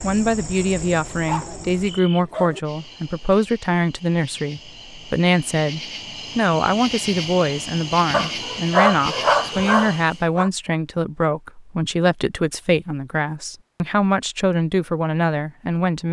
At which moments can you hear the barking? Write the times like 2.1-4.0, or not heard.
0.6-2.6, 8.1-10.5.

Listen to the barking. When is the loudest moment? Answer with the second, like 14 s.
9 s.